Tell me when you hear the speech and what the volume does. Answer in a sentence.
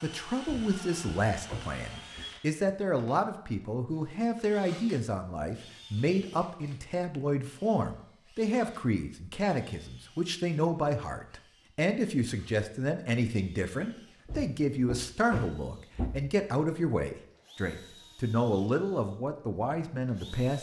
You can hear the speech from 0.0 to 20.5 s, at a steady volume.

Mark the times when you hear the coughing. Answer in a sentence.
The coughing can't be heard in this clip.